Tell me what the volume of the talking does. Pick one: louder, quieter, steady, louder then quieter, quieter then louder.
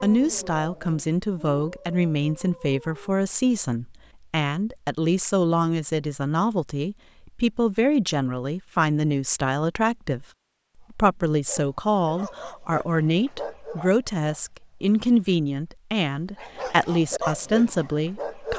steady.